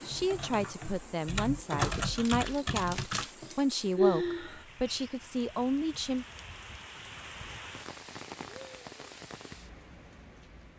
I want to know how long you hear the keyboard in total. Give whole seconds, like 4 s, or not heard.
5 s.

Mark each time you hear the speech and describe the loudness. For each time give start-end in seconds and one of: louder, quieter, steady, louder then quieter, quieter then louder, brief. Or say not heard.
0.0-6.2 steady.